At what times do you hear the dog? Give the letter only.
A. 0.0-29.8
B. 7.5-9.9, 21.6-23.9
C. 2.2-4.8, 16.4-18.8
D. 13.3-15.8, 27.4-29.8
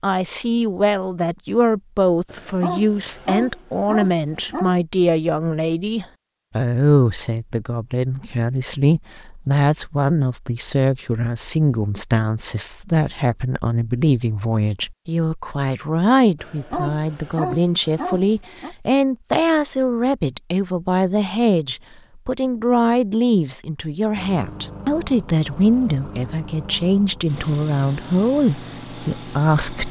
C.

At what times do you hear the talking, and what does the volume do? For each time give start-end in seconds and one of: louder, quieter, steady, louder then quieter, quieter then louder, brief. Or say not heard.
0.0-29.8 steady.